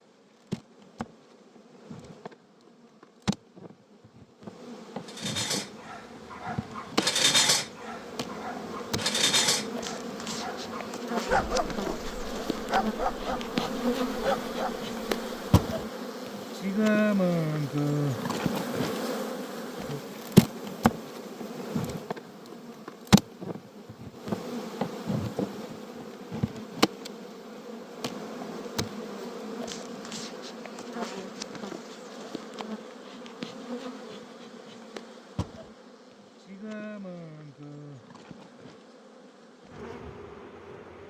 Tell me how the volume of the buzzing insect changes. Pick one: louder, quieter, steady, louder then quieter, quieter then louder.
louder then quieter.